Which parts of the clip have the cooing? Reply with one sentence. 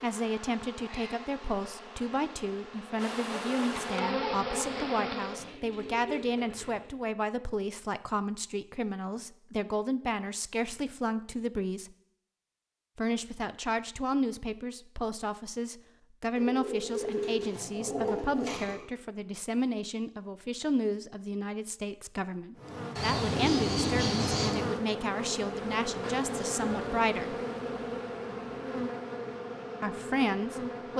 You can hear the cooing from 5.3 to 7.0 s, from 16.4 to 18.9 s and from 22.9 to 24.5 s.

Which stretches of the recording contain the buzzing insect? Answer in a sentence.
You can hear the buzzing insect from 0.0 to 5.5 s and from 22.6 to 30.9 s.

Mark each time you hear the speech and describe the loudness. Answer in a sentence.
You can hear the speech from 0.0 to 11.9 s, at a steady volume; from 12.9 to 27.4 s, at a steady volume; and briefly from 29.8 to 30.9 s.